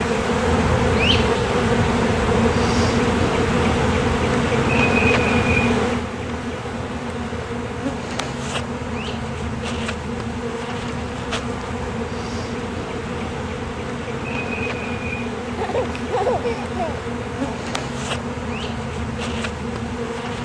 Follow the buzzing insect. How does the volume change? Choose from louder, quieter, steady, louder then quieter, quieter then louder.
quieter.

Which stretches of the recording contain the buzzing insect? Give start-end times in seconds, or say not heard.
0.0-20.4.